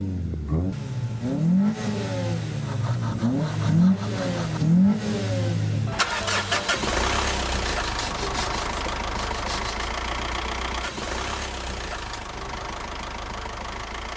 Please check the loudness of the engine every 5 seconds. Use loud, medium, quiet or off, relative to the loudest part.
loud, loud, medium.